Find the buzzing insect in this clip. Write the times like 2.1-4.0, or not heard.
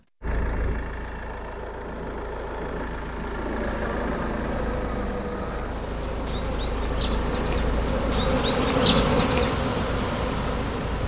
3.6-11.0.